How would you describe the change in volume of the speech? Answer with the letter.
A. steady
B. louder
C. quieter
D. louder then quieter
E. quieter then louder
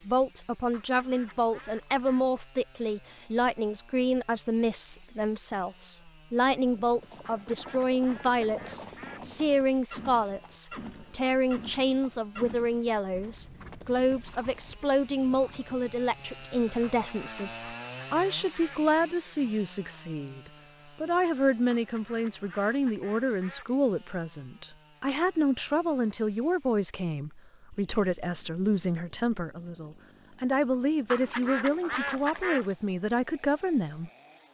A.